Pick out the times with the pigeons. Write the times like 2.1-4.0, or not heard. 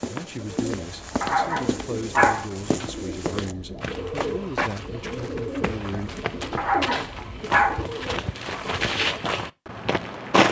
0.5-9.2.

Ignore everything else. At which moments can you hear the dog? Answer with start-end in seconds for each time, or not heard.
1.2-2.5, 6.5-7.8.